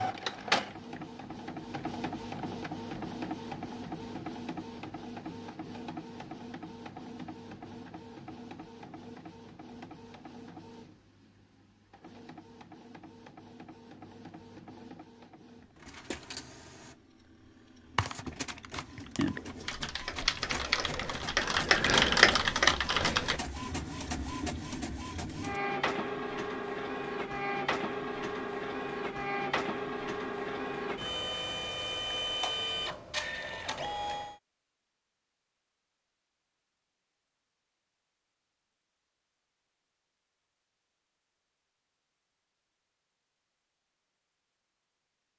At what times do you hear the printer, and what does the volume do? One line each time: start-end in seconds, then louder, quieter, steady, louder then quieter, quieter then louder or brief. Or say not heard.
0.0-34.4 quieter then louder.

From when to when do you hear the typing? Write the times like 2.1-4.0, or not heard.
17.9-23.4.